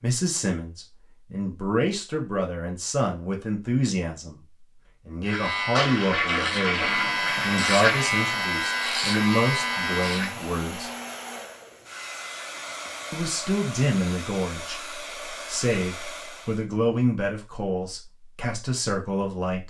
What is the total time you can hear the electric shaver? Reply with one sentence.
You can hear the electric shaver for 5 seconds altogether.